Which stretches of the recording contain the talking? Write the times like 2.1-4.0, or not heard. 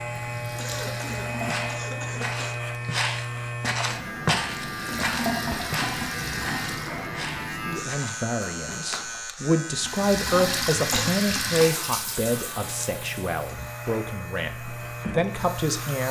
7.5-16.0.